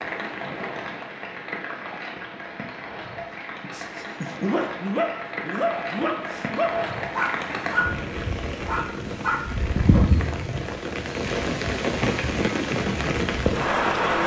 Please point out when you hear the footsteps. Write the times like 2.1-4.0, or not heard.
not heard.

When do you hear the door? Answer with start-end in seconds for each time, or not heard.
not heard.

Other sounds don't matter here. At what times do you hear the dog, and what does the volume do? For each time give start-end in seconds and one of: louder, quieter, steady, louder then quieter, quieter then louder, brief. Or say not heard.
3.1-10.1 steady.